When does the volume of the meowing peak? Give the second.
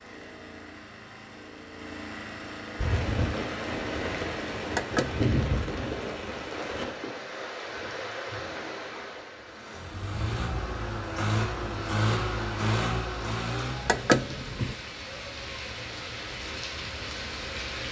14 s.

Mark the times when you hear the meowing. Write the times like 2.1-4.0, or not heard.
4.7-5.2, 13.8-14.8.